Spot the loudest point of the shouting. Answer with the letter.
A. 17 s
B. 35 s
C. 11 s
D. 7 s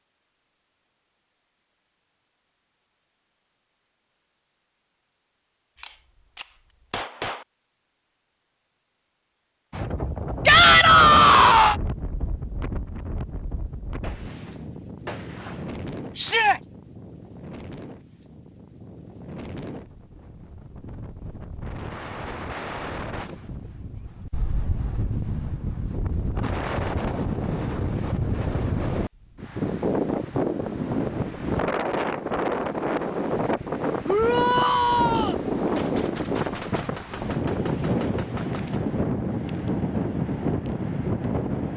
C.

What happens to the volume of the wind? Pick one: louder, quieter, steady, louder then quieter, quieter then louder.
quieter then louder.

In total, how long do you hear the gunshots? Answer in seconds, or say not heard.
7 s.